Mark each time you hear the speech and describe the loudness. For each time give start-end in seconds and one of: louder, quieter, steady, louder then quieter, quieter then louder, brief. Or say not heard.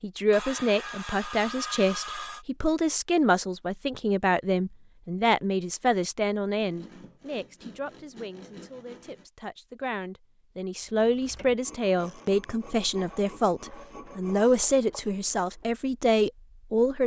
0.0-17.0 quieter then louder.